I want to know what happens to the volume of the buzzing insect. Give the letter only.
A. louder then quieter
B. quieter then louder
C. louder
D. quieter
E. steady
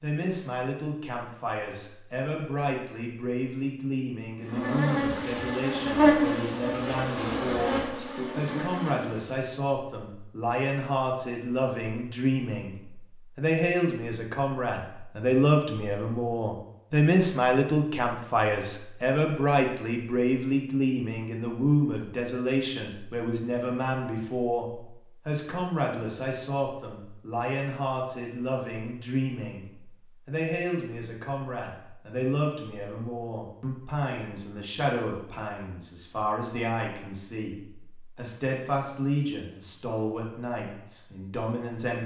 A.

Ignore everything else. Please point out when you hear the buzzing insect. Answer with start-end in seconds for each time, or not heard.
4.4-9.4.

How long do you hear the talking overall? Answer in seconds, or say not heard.
42 s.